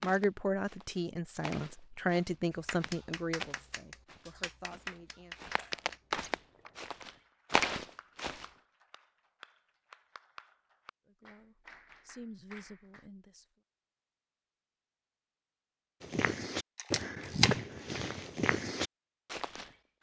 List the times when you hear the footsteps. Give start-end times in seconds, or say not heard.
0.0-8.4, 16.0-19.9.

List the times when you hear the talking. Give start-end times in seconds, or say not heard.
0.0-5.3, 11.1-13.4.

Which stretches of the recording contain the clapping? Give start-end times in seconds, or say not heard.
2.5-13.1.